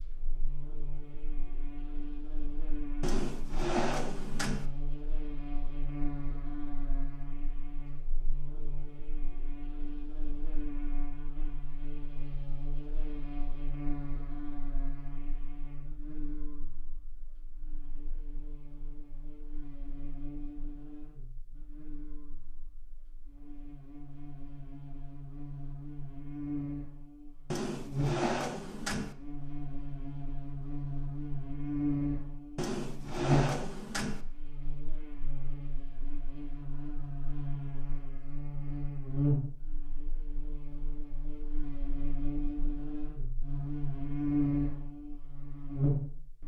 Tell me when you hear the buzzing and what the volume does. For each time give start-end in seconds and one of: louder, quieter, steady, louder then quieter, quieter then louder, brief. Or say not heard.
0.0-46.4 louder.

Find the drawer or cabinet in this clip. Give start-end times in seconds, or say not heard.
3.0-4.7, 27.5-29.1, 32.5-34.2.